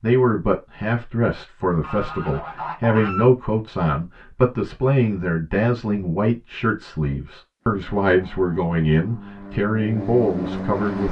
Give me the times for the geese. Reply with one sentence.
You can hear the geese from 1.8 to 3.3 s.